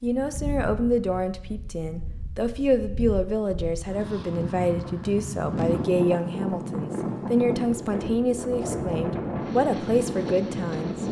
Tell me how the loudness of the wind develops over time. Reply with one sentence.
The volume of the wind goes up.